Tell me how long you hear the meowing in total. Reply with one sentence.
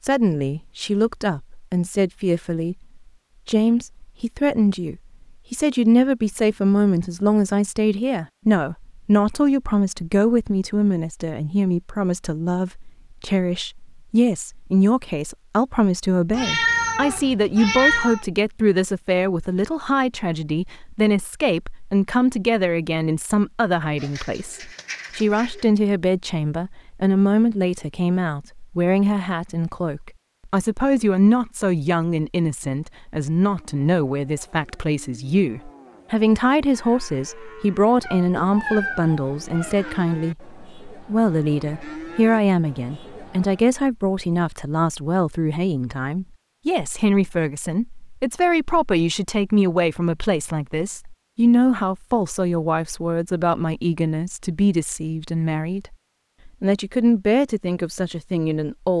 You can hear the meowing for 4 seconds altogether.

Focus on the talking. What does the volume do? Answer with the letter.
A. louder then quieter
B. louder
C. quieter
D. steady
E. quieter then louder
D.